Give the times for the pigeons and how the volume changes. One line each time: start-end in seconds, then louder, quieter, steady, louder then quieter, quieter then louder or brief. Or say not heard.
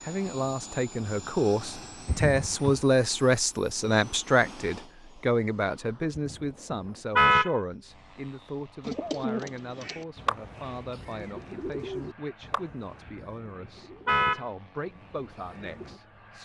8.8-16.0 quieter.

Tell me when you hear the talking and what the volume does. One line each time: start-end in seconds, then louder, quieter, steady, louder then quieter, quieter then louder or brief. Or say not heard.
0.0-16.3 quieter.